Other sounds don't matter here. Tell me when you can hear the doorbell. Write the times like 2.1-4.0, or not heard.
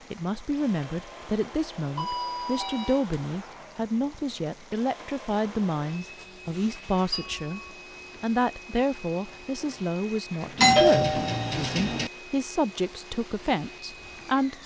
1.9-3.0, 6.2-7.5, 10.6-12.1.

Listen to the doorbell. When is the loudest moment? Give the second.
11 s.